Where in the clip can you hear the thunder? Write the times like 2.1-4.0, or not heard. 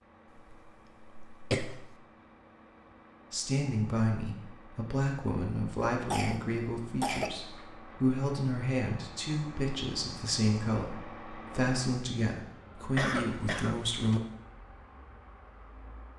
not heard.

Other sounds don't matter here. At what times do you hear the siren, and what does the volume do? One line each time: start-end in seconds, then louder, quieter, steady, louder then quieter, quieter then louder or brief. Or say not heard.
not heard.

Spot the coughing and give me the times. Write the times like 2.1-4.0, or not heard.
0.3-1.9, 6.1-7.3, 12.9-14.2.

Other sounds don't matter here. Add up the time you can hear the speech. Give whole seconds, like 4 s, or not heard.
11 s.